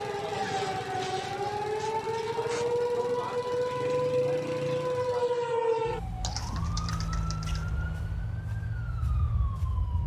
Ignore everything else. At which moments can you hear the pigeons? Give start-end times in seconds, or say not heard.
6.2-7.8.